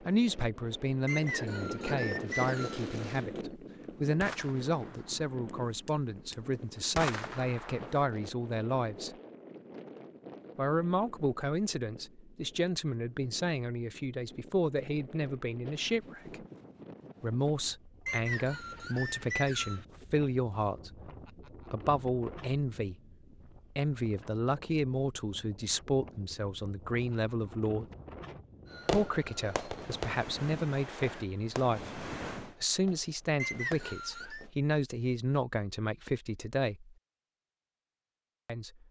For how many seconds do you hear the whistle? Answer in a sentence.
The whistle can be heard for 5 seconds in total.